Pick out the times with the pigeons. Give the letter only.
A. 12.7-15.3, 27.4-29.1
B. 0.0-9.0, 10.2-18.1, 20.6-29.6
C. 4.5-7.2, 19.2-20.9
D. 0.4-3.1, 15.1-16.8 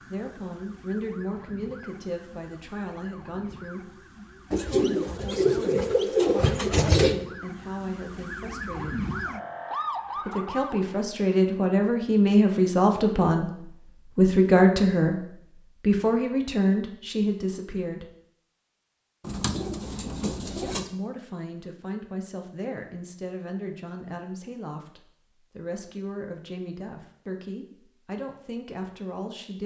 C.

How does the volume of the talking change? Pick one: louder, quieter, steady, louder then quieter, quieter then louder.
louder then quieter.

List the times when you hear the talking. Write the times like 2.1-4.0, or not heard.
0.0-9.0, 10.2-18.1, 20.6-29.6.